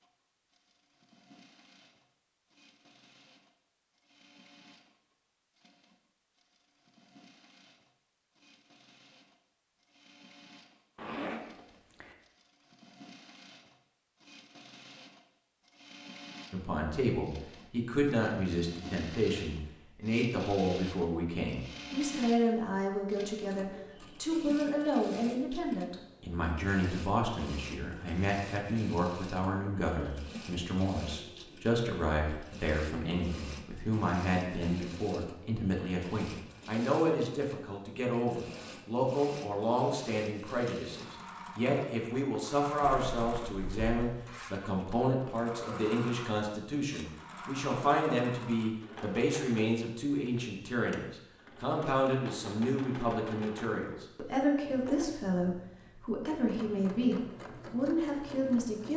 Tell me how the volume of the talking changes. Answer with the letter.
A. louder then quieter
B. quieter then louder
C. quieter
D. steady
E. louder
D.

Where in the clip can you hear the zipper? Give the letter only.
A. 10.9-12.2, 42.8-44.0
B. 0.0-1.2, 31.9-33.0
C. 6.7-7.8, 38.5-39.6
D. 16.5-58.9
A.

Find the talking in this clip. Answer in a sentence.
You can hear the talking from 16.5 to 58.9 s.